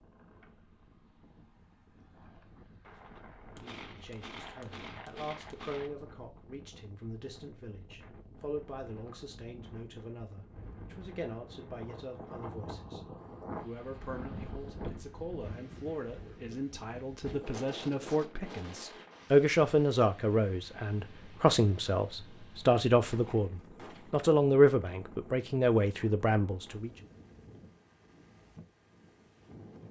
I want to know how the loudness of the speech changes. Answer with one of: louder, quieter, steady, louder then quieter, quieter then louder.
louder.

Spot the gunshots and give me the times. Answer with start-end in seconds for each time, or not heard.
2.9-5.9, 23.1-24.1.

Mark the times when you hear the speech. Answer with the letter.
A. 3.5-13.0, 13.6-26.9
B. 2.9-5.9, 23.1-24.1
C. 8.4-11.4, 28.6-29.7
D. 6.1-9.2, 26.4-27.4
A.